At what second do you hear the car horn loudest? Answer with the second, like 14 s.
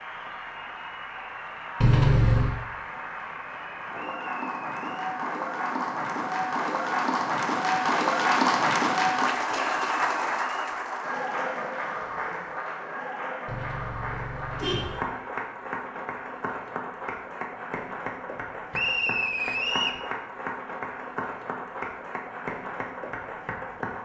2 s.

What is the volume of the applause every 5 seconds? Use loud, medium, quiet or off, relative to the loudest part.
medium, loud, medium, medium, medium.